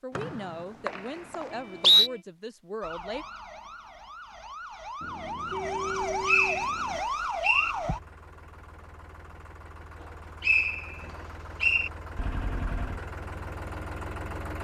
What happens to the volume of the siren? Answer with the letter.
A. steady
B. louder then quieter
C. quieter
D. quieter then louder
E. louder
E.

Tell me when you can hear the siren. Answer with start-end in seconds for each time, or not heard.
2.8-8.0.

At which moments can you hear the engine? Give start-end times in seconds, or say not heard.
7.5-14.6.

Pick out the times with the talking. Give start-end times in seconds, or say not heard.
0.0-3.2.